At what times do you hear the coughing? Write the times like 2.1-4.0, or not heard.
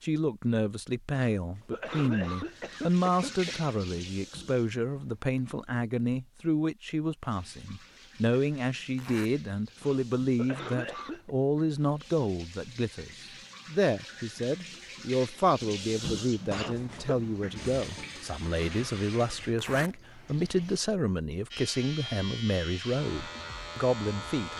1.1-3.5, 9.8-11.3, 16.5-17.1.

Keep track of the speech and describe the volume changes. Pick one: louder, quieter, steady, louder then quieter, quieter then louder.
steady.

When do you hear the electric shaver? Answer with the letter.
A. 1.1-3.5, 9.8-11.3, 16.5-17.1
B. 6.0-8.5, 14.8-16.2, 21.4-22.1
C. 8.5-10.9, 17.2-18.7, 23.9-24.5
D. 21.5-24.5
D.